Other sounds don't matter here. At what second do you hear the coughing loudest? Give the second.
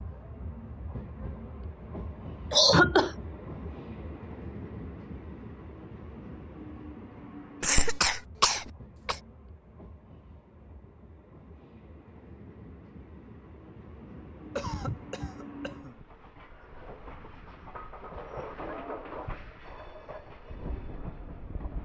3 s.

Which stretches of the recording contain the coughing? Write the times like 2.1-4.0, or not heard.
2.5-3.1, 7.6-9.2, 14.6-16.0.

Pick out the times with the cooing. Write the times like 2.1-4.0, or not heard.
not heard.